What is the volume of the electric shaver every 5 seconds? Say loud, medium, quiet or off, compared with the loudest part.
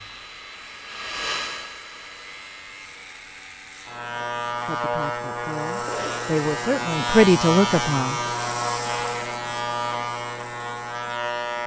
medium, loud, loud.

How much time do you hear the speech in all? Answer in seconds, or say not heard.
4 s.